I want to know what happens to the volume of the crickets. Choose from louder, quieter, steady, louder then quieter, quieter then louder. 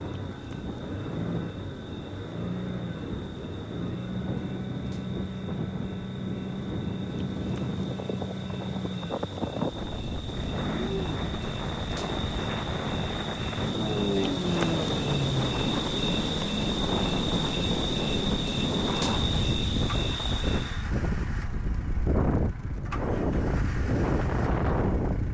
louder.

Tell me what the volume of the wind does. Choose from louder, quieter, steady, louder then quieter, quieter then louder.
louder.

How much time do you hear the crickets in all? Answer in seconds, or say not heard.
21 s.